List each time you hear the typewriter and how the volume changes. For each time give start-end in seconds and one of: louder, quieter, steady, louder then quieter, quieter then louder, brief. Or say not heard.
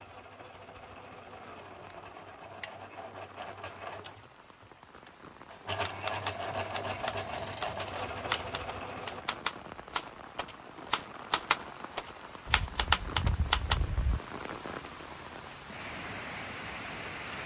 5.8-13.8 louder.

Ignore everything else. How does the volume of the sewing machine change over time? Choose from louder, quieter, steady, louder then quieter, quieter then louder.
louder.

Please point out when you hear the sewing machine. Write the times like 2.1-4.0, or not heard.
0.0-9.2.